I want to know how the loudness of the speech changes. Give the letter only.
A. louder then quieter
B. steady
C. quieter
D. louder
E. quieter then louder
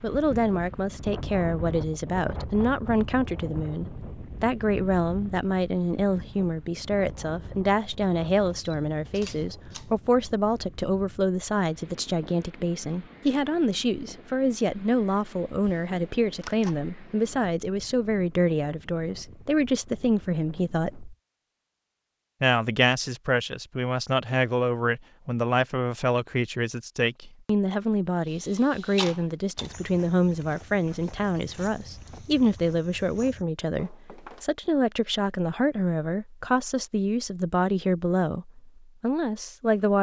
B.